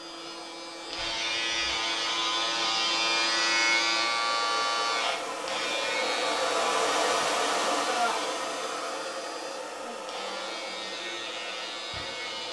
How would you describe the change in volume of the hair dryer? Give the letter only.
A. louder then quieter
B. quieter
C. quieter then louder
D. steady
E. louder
A.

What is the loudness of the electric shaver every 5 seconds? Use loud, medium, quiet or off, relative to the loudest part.
loud, medium, medium.